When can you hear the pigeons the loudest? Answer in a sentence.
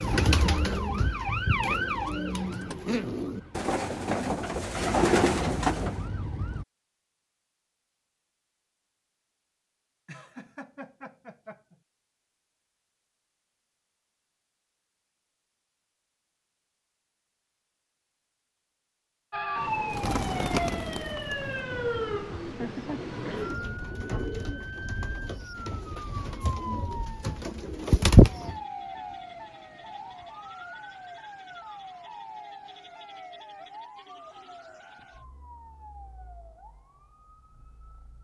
The volume of the pigeons peaks at 28 seconds.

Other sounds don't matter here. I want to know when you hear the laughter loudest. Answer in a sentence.
The volume of the laughter peaks at 23 seconds.